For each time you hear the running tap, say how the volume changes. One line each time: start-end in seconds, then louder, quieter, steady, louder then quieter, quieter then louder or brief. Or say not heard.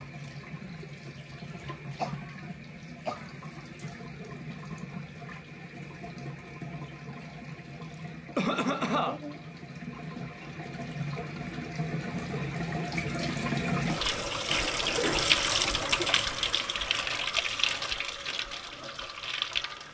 0.0-19.8 louder.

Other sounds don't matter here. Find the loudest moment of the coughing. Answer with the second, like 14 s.
9 s.